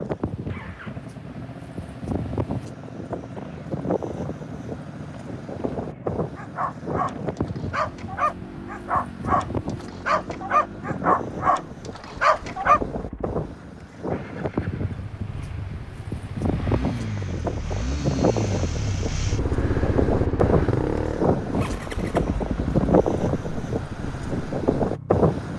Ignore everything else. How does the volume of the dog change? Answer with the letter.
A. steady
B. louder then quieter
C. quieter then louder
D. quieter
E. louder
E.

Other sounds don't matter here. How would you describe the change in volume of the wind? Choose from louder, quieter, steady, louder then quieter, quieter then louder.
louder.